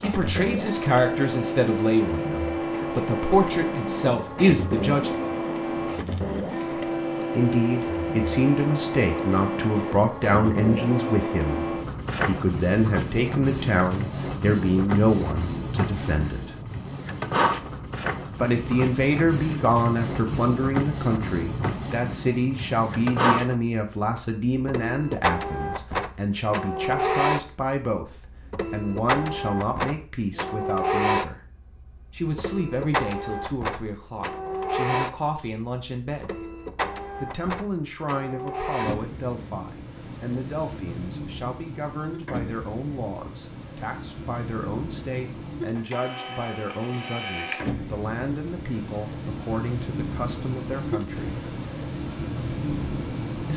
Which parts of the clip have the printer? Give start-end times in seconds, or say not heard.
0.0-53.5.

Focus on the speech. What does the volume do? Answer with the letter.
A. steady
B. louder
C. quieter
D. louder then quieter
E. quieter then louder
C.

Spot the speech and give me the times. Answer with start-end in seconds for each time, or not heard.
0.0-5.2, 7.3-16.6, 18.4-31.4, 32.1-36.5, 37.2-51.4.